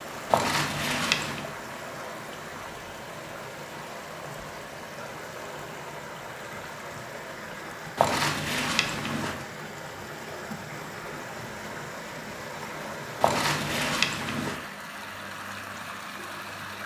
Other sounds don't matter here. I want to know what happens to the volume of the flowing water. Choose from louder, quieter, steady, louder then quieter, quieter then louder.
steady.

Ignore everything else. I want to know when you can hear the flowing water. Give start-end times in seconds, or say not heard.
0.0-16.8.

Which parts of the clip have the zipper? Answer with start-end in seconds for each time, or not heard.
0.3-1.4, 8.0-9.4, 13.2-14.6.